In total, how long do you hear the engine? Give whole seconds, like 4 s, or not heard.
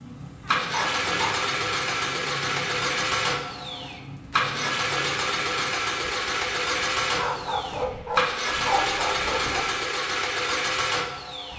11 s.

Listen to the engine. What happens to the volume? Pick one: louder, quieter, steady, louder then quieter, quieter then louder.
steady.